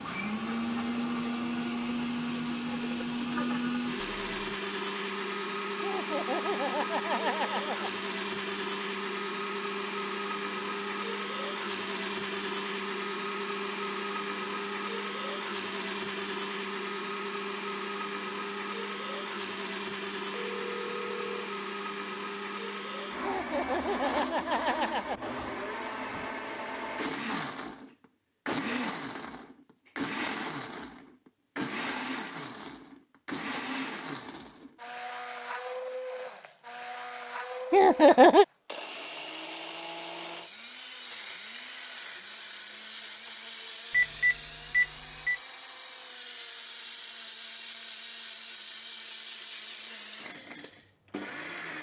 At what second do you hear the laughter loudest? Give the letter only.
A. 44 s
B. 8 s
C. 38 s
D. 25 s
C.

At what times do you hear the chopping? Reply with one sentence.
You can't hear the chopping here.